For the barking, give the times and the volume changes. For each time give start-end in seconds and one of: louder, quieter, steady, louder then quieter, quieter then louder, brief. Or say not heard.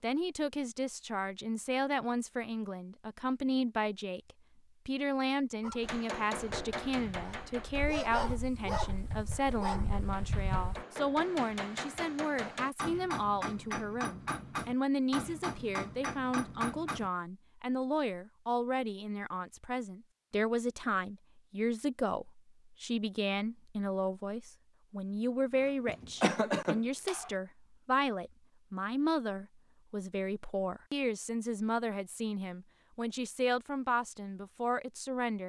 5.6-10.8 louder.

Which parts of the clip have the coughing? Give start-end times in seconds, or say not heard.
25.9-27.3.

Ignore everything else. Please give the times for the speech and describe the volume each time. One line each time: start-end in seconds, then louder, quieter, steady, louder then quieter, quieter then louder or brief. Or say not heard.
0.0-35.4 steady.